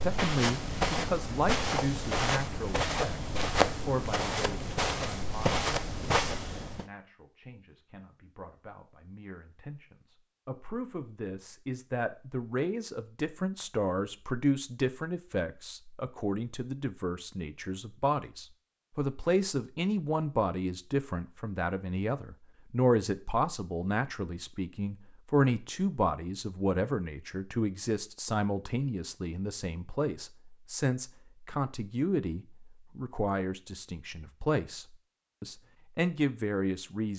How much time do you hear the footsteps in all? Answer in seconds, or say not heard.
7 s.